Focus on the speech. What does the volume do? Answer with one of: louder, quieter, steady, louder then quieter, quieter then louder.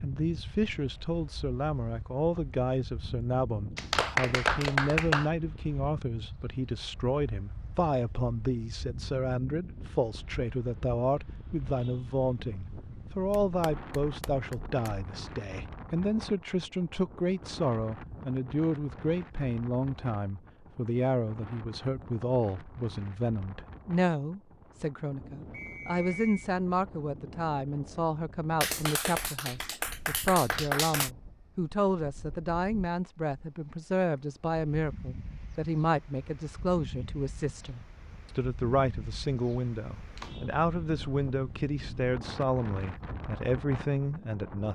steady.